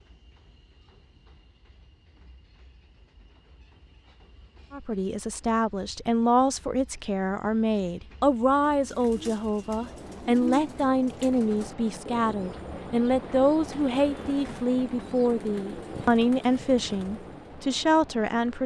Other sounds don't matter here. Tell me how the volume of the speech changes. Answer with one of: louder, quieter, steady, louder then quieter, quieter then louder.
steady.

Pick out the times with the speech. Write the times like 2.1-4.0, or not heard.
4.7-18.6.